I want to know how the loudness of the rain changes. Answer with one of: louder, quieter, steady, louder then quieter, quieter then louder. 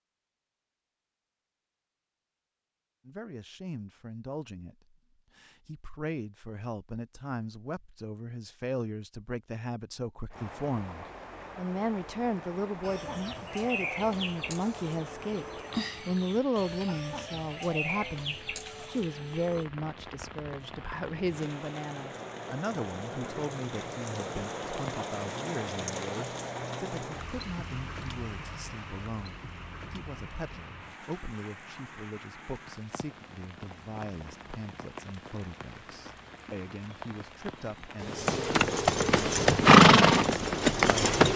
louder then quieter.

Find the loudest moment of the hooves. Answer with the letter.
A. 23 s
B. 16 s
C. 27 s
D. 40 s
D.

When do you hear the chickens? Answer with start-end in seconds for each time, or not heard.
12.8-19.6.